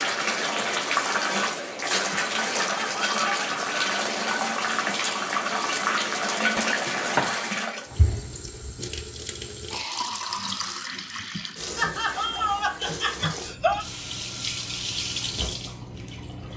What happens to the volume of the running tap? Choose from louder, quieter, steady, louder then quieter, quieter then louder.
quieter.